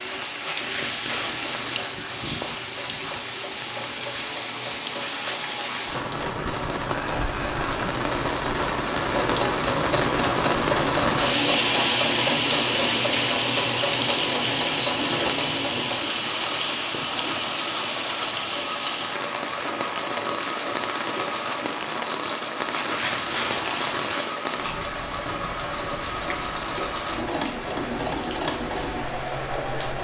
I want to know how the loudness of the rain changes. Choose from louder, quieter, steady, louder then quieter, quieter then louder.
louder then quieter.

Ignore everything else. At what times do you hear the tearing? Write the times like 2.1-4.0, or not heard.
0.4-1.9, 22.6-24.3.